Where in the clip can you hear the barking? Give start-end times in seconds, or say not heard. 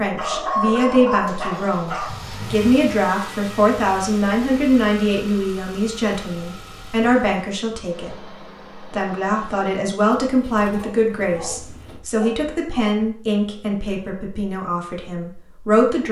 0.1-2.4, 10.6-12.9.